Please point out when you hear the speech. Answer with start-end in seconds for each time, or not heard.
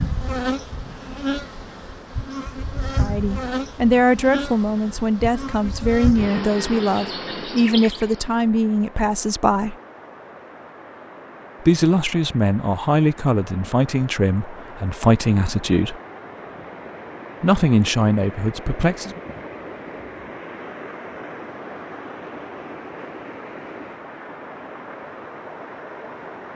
3.0-9.8, 11.6-16.0, 17.4-19.2.